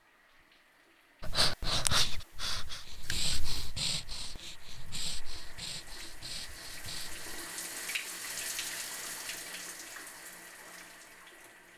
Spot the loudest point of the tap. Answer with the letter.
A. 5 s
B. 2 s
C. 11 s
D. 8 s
D.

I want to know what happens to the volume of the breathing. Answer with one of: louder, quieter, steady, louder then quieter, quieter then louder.
quieter.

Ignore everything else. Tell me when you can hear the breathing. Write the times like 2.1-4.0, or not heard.
1.2-7.5.